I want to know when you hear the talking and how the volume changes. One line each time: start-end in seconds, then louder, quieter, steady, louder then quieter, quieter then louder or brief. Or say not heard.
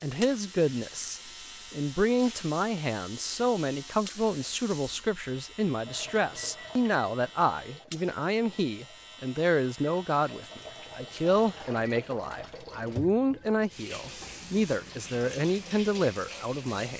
0.0-16.9 steady.